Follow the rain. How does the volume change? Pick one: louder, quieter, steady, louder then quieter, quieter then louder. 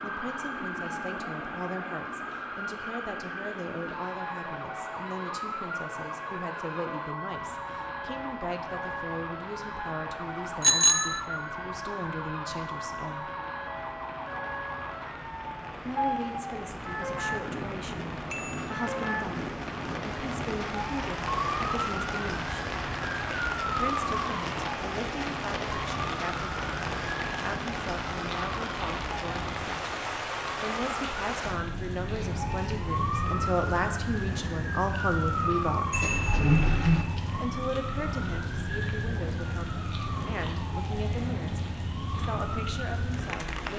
louder.